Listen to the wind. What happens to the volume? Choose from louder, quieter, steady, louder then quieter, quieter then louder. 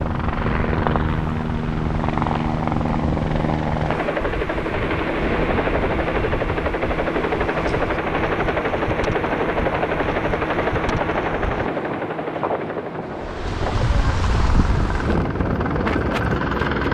louder.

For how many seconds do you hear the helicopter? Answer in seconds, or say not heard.
17 s.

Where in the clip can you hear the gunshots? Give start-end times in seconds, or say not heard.
not heard.